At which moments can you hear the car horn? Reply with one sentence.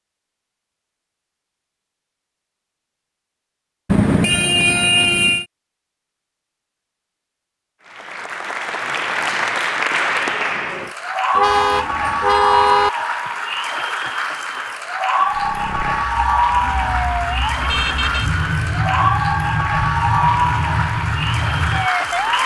You can hear the car horn from 3.9 to 5.5 s, from 11.3 to 12.9 s and from 17.6 to 18.3 s.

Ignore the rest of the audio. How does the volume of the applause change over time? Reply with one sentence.
The volume of the applause stays about the same.